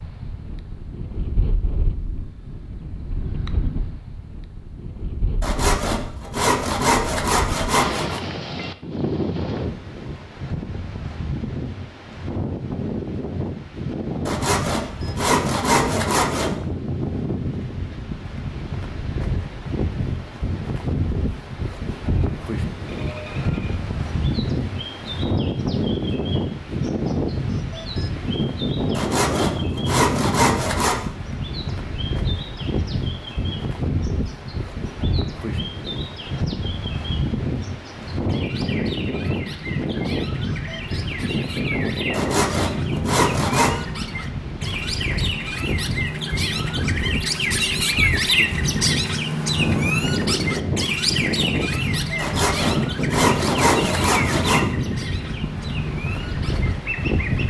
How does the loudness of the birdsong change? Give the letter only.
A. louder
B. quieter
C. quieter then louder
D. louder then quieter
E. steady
D.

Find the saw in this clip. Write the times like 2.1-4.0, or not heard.
5.4-8.2, 14.2-16.5, 28.9-31.1, 42.1-43.8, 52.1-54.6.